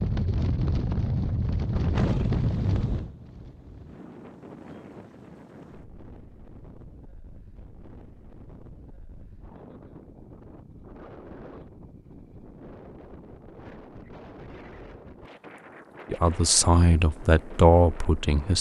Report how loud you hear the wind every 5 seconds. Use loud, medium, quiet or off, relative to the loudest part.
loud, quiet, quiet, quiet.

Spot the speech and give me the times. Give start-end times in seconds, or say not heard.
16.1-18.5.